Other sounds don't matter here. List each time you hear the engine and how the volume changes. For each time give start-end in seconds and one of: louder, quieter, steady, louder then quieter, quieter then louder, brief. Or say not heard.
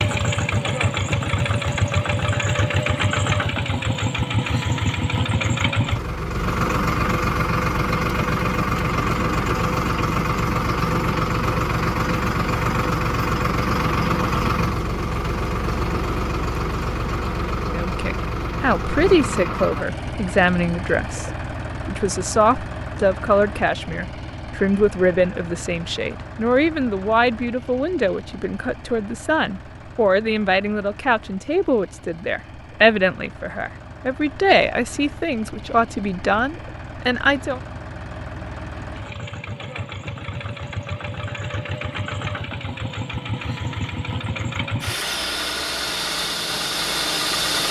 0.0-47.6 quieter then louder.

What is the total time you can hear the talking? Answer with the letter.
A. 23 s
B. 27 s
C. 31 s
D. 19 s
D.